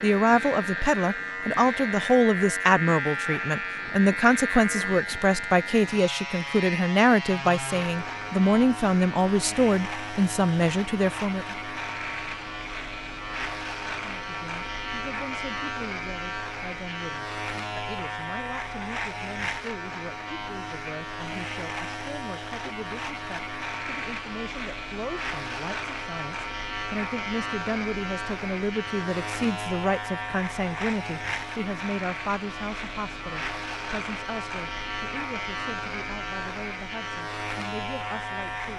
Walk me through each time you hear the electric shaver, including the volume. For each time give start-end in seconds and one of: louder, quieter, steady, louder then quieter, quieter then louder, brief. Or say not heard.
0.0-38.7 steady.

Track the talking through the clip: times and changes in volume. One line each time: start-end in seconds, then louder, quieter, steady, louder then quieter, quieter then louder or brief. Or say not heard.
0.0-11.6 steady
14.0-38.7 louder then quieter.